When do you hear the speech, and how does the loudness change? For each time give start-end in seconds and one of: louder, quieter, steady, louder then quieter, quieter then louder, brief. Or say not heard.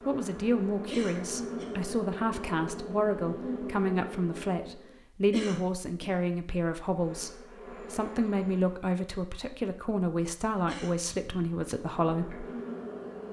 0.1-12.4 steady.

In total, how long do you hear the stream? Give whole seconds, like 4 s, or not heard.
not heard.